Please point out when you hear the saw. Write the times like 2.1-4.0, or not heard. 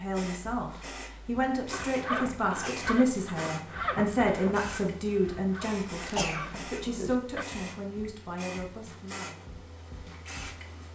1.7-7.5.